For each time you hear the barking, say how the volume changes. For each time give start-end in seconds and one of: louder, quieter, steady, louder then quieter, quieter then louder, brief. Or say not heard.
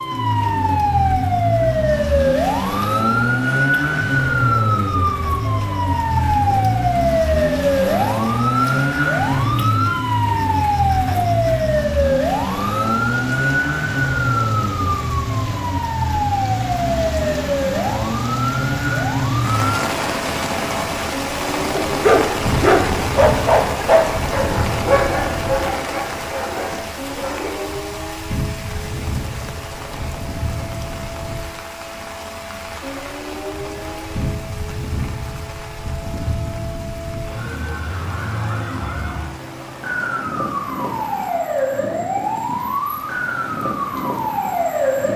21.9-27.6 quieter.